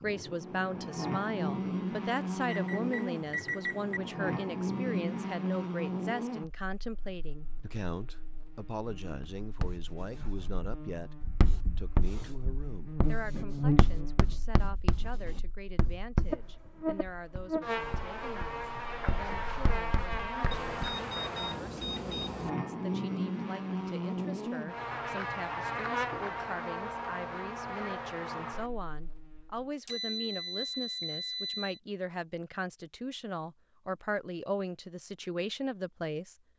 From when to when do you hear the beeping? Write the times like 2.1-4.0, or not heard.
2.5-4.0, 20.5-22.5, 29.9-31.8.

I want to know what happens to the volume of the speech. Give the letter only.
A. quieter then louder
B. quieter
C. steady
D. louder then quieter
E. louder
A.